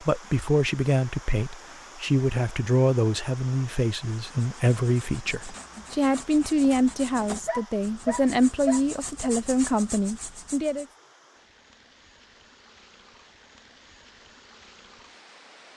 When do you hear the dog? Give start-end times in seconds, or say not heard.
7.5-9.3.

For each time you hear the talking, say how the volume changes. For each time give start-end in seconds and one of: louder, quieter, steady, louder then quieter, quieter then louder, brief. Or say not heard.
0.0-10.8 steady.